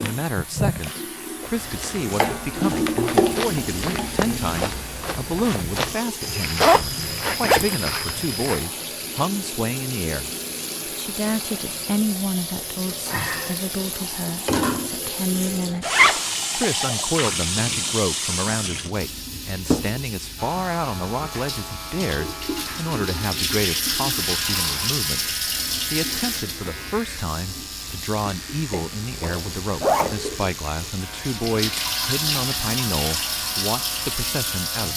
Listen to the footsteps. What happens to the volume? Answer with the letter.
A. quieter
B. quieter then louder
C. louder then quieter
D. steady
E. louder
E.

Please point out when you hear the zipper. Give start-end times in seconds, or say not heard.
6.6-7.8, 15.8-16.4, 28.7-30.2.